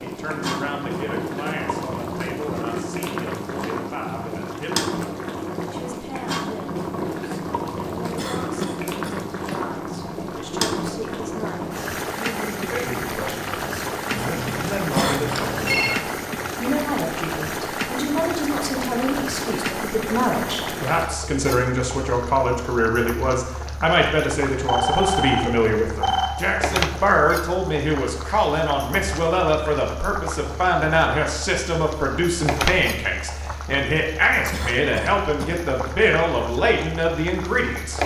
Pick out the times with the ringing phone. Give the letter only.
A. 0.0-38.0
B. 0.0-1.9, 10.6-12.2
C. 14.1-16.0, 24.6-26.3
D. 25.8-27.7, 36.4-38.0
C.